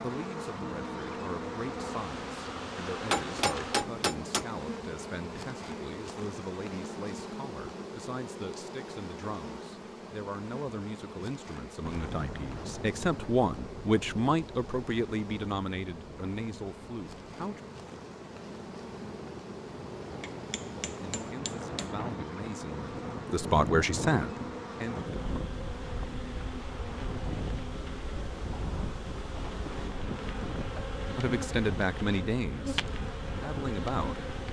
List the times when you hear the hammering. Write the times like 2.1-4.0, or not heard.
3.1-4.5, 20.2-21.9.